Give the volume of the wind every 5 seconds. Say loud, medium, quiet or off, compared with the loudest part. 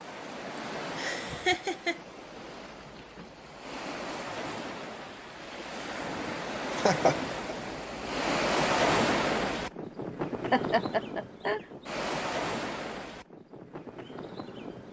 medium, loud, medium.